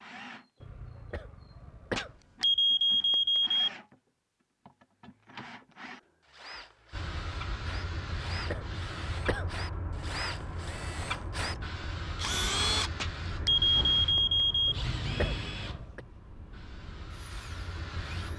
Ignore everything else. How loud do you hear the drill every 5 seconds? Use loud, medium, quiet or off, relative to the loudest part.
quiet, medium, loud, medium.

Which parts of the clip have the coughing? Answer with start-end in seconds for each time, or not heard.
0.6-2.1, 8.0-9.6, 14.7-16.0.